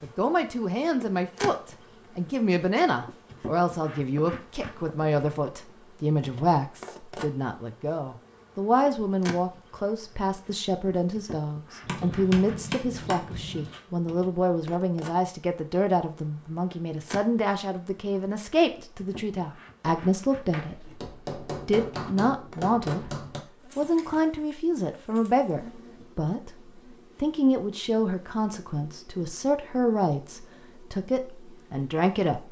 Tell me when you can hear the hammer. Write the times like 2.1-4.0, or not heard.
11.8-13.8, 20.5-23.4.